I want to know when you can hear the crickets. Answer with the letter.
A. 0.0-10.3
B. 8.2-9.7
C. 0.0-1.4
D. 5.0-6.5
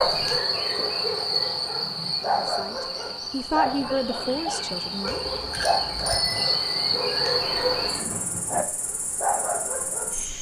A.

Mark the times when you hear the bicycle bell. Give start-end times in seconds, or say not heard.
5.0-6.5.